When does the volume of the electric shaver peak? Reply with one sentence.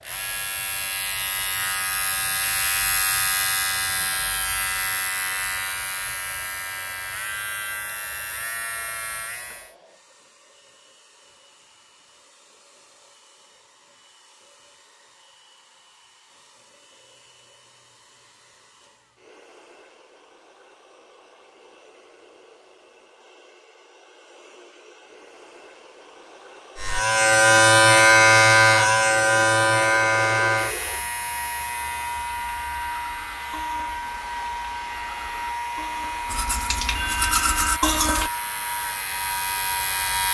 The loudest moment of the electric shaver is at 28 seconds.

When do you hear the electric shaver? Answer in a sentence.
You can hear the electric shaver from 0.0 to 9.8 s and from 26.8 to 40.2 s.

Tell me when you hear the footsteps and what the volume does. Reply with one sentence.
The footsteps can't be heard in this clip.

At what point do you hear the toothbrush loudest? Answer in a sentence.
The loudest moment of the toothbrush is at 38 seconds.